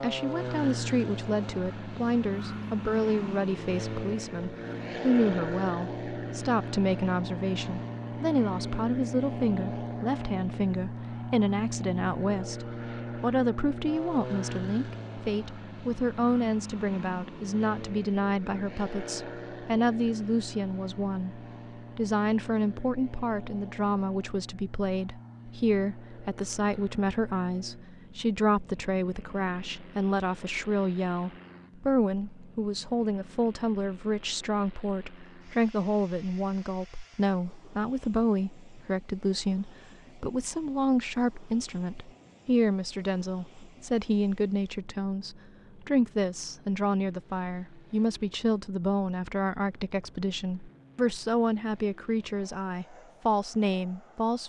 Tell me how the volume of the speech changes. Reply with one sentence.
The volume of the speech stays about the same.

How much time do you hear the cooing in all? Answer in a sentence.
The cooing can't be heard in this clip.